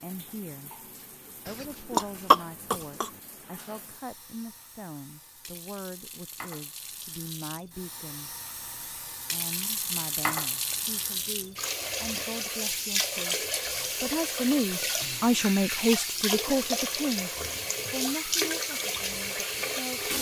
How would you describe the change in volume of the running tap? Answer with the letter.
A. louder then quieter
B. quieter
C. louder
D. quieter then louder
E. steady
C.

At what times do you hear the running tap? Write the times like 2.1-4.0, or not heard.
0.0-20.1.